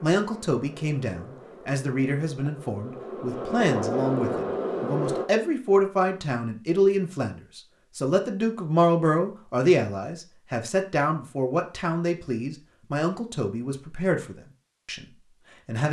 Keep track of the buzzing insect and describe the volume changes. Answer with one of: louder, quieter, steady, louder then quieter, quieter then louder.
louder.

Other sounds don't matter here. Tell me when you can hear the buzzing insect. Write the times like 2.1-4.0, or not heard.
0.0-5.3.